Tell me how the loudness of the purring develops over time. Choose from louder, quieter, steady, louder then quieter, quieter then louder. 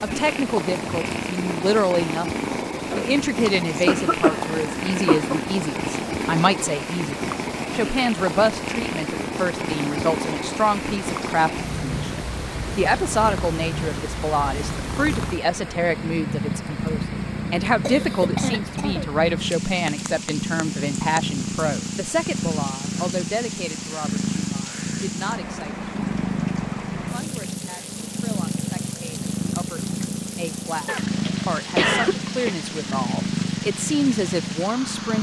steady.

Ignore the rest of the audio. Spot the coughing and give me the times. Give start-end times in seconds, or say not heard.
3.5-5.5, 17.8-19.1, 30.9-32.5.